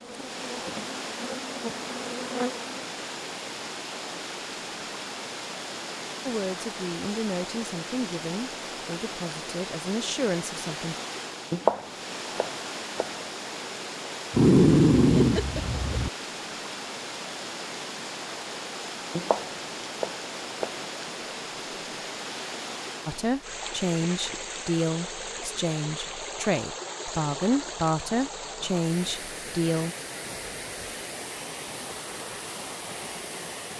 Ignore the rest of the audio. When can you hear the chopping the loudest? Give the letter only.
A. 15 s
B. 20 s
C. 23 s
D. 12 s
D.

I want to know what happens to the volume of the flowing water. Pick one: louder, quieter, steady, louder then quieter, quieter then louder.
steady.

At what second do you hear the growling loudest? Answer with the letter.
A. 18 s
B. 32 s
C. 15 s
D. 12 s
C.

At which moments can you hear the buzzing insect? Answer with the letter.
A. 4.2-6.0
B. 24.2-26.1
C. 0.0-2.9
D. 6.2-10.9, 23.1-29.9
C.